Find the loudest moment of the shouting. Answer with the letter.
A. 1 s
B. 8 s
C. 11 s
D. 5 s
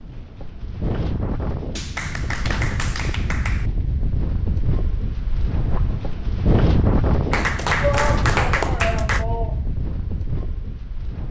B.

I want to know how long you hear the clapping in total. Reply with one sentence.
You can hear the clapping for 4 seconds altogether.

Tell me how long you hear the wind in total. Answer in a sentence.
You can hear the wind for 11 seconds altogether.